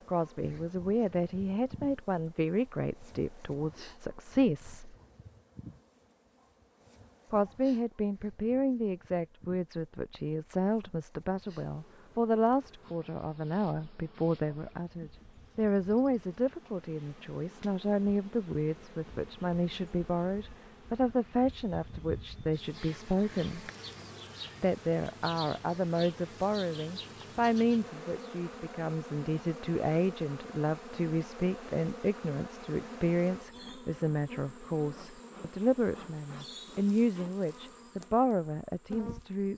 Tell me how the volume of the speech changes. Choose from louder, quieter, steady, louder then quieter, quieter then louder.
steady.